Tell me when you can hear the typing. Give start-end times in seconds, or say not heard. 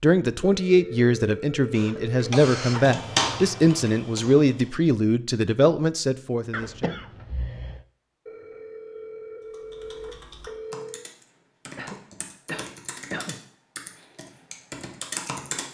2.1-4.8, 9.4-15.6.